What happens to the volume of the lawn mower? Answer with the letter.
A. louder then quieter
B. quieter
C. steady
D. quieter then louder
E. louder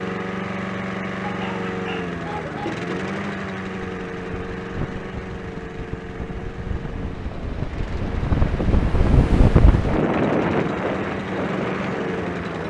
D.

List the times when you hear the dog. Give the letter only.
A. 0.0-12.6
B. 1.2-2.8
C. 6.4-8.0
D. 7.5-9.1
B.